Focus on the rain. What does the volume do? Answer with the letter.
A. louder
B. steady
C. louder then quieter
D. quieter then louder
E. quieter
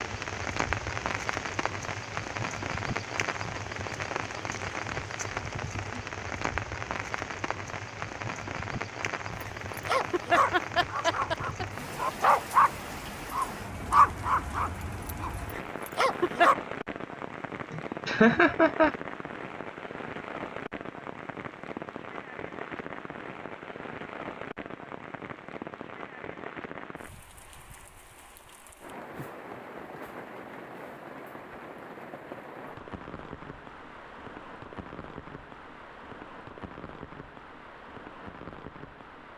E.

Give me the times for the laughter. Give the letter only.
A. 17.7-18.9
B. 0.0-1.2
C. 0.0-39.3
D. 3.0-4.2
A.